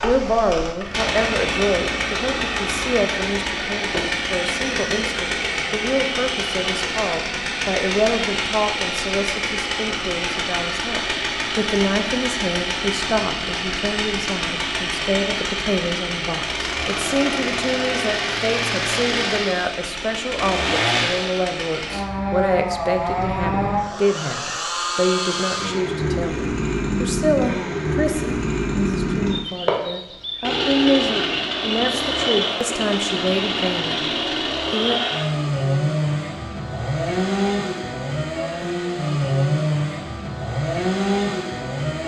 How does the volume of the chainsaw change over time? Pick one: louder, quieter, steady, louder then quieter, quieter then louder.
steady.